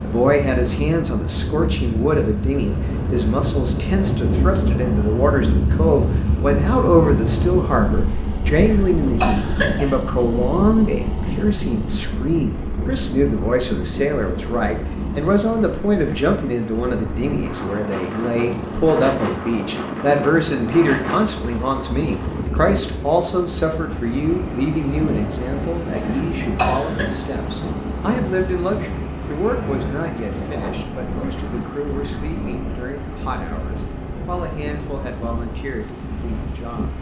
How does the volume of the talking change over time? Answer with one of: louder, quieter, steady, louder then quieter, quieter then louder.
quieter.